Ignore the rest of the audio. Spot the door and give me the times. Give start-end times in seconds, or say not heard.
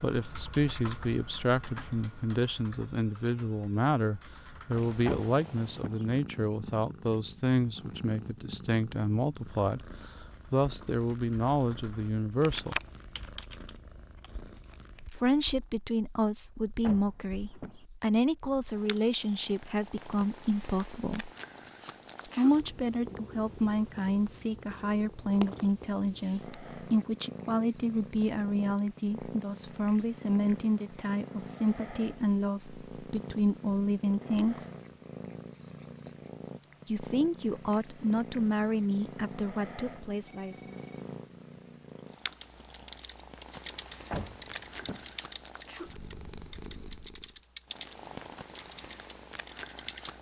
5.0-6.0, 16.8-17.9, 44.1-45.1.